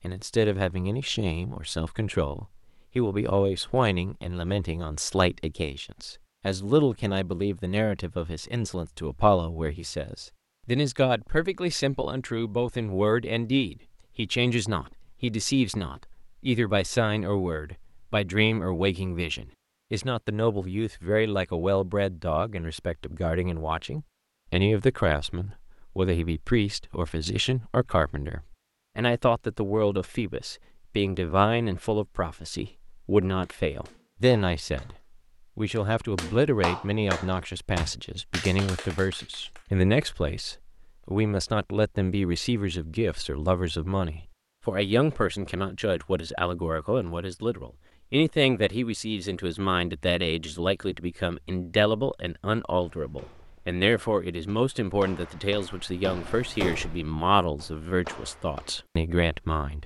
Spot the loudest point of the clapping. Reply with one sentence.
The volume of the clapping peaks at 37 seconds.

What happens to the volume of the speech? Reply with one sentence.
The loudness of the speech stays about the same.